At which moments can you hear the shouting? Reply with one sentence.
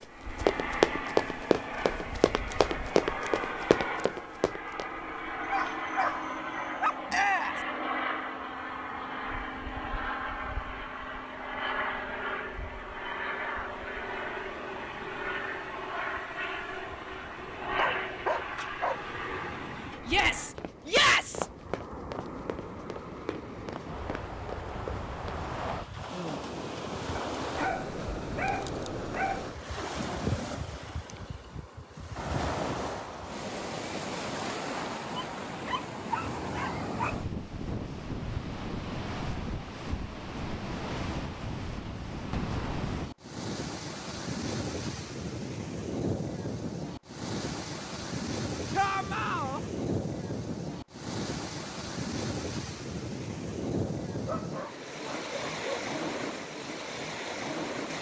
The shouting can be heard from 7.1 to 7.6 s, from 20.1 to 21.4 s and from 48.8 to 49.6 s.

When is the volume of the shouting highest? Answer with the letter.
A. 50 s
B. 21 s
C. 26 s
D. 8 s
B.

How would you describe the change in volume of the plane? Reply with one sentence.
The loudness of the plane stays about the same.